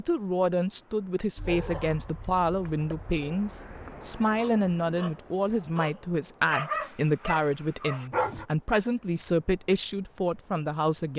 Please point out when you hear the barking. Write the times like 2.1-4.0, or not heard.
1.4-8.4.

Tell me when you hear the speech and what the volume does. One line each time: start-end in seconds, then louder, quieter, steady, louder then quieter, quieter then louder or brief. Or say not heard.
0.0-11.1 steady.